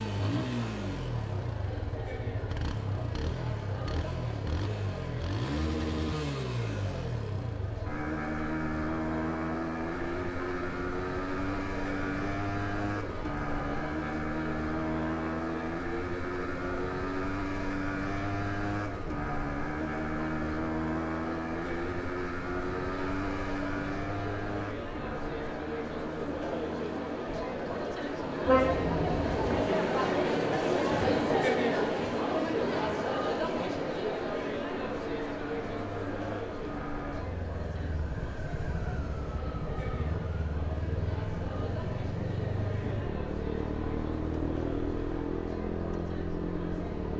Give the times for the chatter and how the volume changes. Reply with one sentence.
The chatter can be heard from 0.0 to 47.1 s, getting louder then quieter.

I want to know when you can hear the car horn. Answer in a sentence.
The car horn can be heard from 28.4 to 29.6 s.